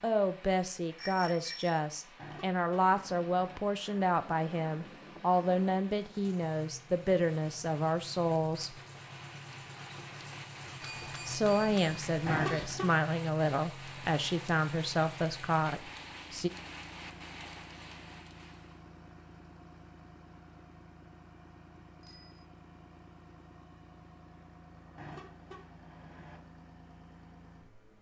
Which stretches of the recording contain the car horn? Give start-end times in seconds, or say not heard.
2.1-3.6, 12.2-12.9, 24.9-26.4.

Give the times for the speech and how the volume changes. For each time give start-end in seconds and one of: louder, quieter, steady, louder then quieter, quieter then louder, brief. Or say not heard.
0.0-8.8 steady
11.2-16.5 steady.